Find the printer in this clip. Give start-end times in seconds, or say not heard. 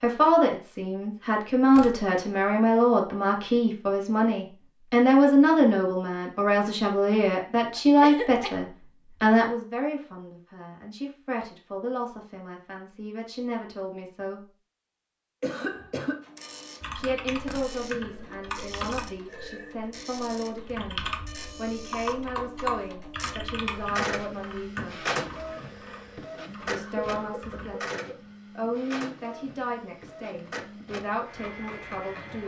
16.2-32.4.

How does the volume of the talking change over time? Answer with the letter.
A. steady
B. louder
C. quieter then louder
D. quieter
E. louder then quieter
D.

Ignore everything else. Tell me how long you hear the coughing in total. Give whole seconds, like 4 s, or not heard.
3 s.